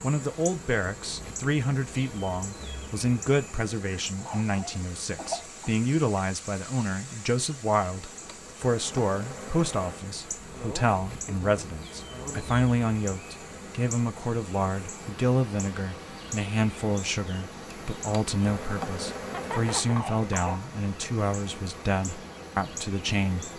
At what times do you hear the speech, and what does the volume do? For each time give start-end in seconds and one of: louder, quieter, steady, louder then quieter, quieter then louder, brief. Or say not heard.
0.0-23.5 steady.